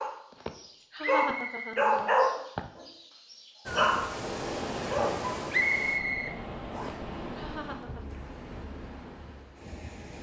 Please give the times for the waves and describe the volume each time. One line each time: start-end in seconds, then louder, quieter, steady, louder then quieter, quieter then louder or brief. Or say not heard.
3.6-10.1 quieter.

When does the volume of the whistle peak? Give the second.
6 s.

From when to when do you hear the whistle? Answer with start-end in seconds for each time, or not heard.
1.0-1.9, 5.5-7.0.